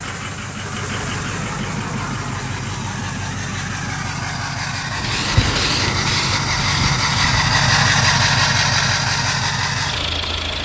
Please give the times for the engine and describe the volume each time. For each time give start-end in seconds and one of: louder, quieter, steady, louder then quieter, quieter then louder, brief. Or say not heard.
0.0-10.5 louder.